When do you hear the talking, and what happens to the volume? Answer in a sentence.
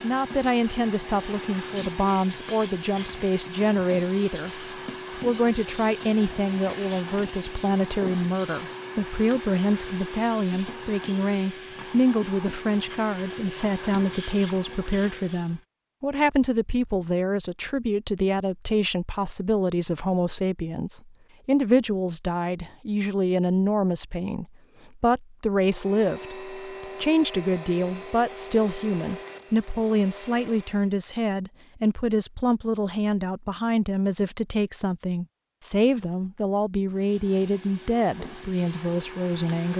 The talking can be heard from 0.0 to 39.7 s, at a steady volume.